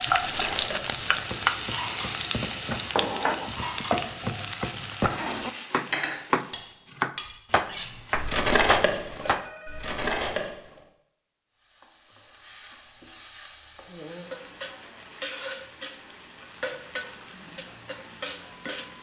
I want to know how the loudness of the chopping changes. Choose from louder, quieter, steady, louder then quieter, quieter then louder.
louder.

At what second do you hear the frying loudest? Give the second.
1 s.